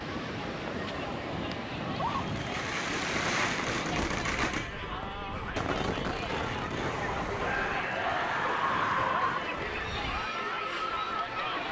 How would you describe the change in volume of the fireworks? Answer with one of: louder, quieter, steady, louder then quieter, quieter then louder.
quieter.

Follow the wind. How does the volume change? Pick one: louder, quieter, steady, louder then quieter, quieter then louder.
quieter.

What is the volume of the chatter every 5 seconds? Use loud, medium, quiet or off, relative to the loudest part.
medium, loud, loud.